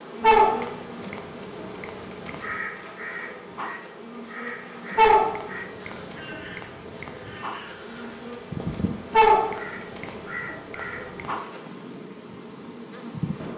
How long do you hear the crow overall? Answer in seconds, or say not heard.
9 s.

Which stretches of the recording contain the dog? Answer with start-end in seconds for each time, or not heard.
0.2-2.4, 5.0-7.1, 9.1-11.2.